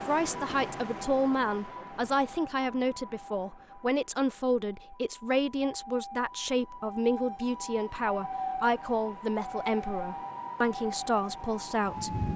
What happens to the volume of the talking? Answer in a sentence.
The volume of the talking stays about the same.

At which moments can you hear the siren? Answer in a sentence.
The siren can be heard from 0.0 to 12.3 s.